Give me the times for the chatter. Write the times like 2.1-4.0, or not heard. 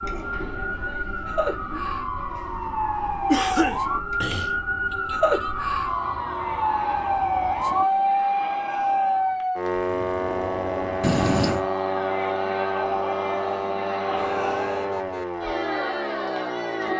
0.0-16.9.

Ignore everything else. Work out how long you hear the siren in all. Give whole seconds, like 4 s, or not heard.
17 s.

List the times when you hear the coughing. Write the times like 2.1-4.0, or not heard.
3.2-4.5, 11.0-11.7.